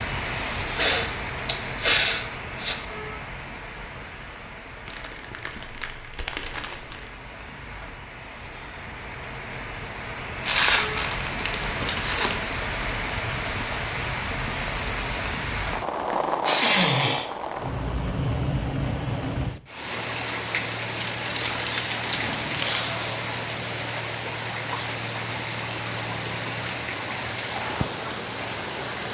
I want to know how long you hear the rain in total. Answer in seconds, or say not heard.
29 s.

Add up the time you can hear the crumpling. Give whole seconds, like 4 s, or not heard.
6 s.